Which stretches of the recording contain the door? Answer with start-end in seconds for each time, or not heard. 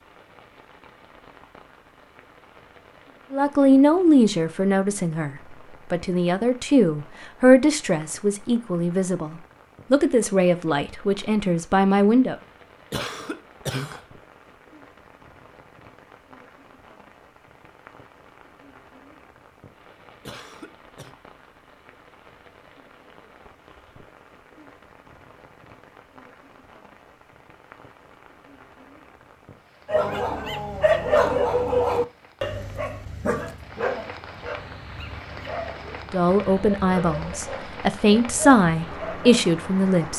not heard.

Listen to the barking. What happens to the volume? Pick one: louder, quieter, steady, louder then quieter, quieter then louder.
quieter.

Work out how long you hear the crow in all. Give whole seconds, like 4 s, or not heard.
not heard.